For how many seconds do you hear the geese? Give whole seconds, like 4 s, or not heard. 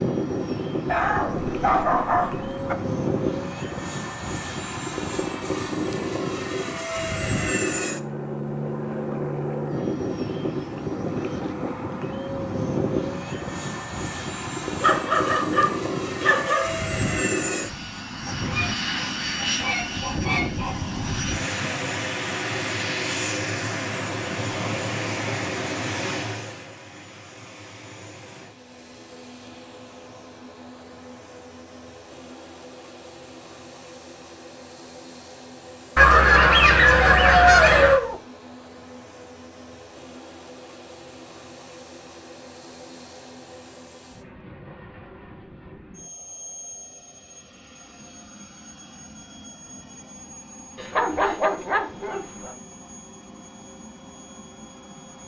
5 s.